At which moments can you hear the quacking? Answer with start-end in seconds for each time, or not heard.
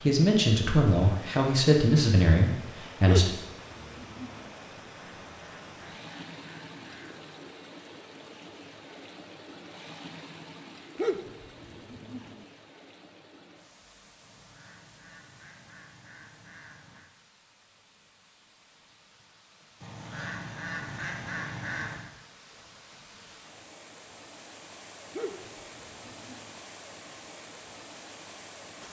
4.8-7.3, 14.2-17.1, 19.8-22.1.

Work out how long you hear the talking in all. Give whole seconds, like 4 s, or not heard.
3 s.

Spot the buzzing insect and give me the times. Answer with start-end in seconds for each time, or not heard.
not heard.